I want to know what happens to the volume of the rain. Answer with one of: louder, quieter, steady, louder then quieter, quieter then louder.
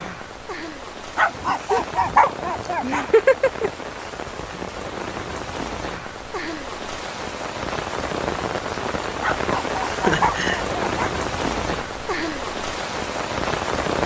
louder.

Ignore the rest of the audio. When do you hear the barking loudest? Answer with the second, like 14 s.
2 s.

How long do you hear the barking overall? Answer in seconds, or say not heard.
4 s.